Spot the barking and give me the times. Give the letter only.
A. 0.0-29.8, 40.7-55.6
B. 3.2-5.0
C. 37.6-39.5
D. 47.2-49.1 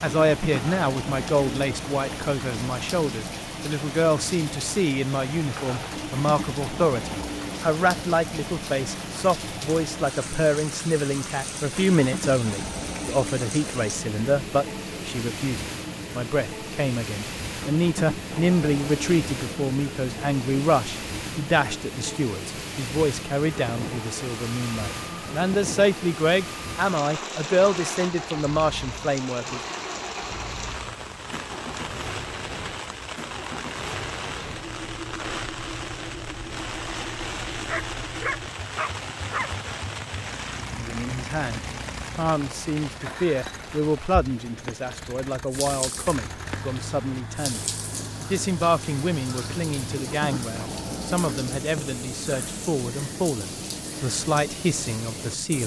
C.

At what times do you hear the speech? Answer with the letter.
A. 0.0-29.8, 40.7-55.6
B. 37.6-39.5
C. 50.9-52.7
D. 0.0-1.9
A.